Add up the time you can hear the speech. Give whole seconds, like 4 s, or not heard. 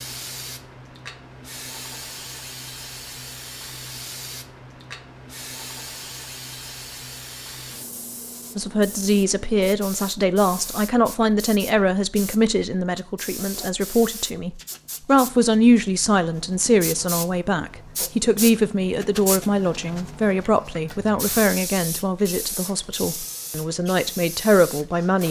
17 s.